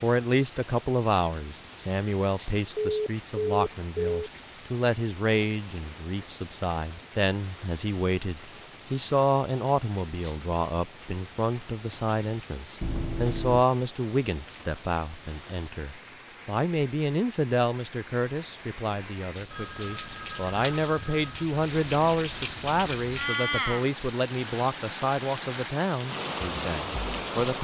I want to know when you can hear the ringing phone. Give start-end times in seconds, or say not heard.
2.8-4.3, 12.8-13.7, 19.5-21.4.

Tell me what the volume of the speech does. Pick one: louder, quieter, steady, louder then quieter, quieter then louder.
steady.